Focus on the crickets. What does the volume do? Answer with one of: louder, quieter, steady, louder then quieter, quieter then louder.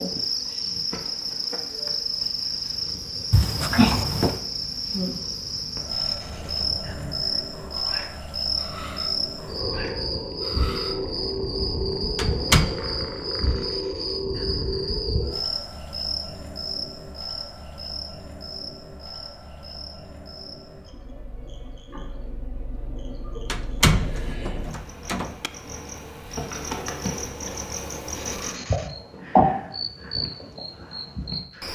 quieter then louder.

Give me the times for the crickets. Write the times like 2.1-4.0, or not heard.
0.0-31.6.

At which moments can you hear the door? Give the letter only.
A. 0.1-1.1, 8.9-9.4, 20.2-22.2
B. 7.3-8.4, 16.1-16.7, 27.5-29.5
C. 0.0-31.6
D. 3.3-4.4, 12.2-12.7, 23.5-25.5
D.